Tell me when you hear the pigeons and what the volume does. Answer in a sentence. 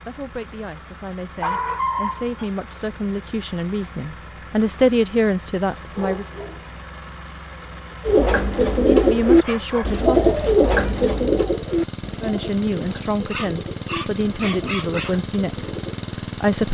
You can hear the pigeons from 8.1 to 16.0 s, getting quieter.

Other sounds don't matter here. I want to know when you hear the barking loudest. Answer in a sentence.
The loudest moment of the barking is at 2 seconds.